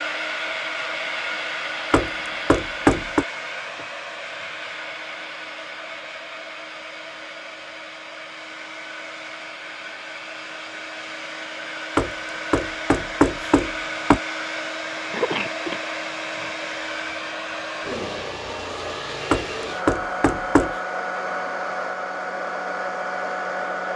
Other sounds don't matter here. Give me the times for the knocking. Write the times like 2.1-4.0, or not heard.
1.9-3.2, 11.9-14.2, 19.3-20.8.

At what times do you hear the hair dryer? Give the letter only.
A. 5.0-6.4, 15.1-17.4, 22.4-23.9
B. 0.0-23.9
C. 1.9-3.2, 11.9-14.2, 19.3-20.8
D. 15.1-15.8
B.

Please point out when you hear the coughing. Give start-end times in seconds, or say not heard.
15.1-15.8.